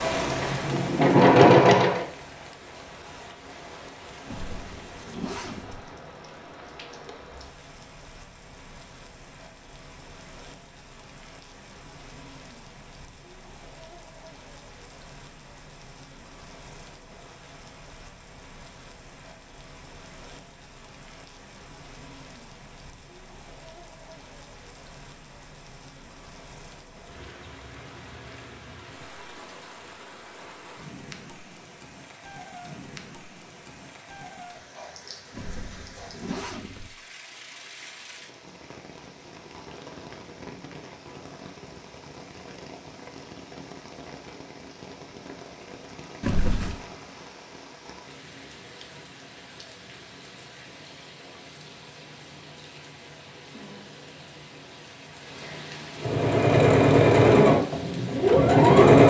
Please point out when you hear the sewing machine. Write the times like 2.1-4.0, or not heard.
0.0-2.0, 56.0-59.0.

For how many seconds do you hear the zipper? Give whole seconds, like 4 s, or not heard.
4 s.